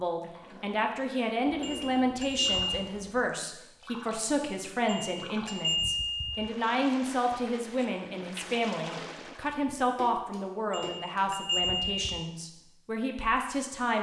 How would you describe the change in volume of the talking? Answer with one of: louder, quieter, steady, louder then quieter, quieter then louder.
steady.